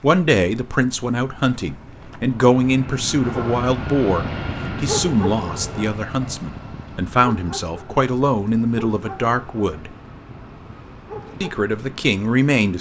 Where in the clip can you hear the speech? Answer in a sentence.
You can hear the speech from 0.0 to 9.9 s and from 11.4 to 12.7 s.